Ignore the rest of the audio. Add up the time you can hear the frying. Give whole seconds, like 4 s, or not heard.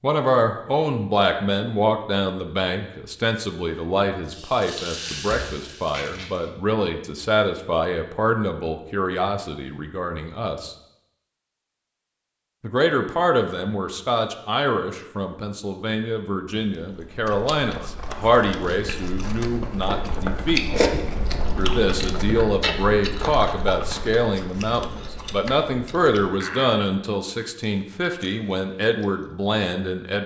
2 s.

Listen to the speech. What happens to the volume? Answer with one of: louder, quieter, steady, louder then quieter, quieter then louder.
steady.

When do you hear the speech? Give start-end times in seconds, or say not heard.
0.0-10.8, 12.6-20.6, 21.6-30.2.